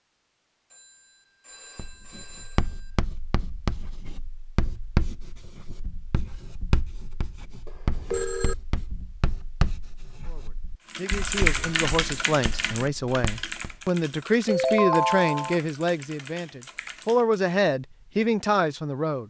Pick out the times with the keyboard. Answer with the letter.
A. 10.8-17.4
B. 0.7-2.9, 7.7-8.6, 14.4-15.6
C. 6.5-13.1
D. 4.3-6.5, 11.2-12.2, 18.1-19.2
A.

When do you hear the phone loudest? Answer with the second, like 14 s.
15 s.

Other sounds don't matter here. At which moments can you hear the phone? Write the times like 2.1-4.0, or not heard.
0.7-2.9, 7.7-8.6, 14.4-15.6.